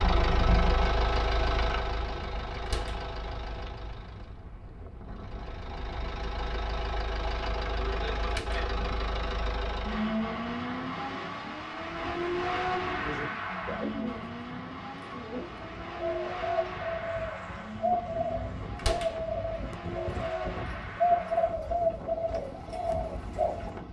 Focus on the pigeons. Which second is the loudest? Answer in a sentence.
The volume of the pigeons peaks at 21 seconds.